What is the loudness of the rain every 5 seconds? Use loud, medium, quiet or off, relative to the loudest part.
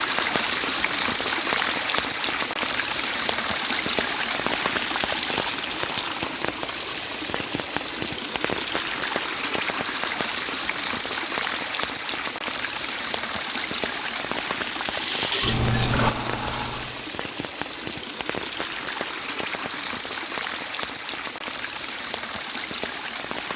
loud, loud, loud, medium, medium.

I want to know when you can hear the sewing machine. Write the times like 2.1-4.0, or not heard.
14.8-17.1.